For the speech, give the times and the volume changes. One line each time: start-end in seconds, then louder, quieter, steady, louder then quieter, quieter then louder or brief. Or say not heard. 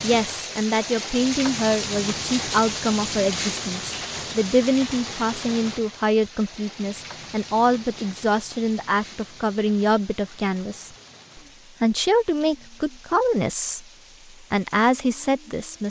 0.0-10.9 steady
11.8-13.8 brief
14.5-15.8 brief.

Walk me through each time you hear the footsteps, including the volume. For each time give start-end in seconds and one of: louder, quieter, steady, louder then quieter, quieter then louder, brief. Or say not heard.
not heard.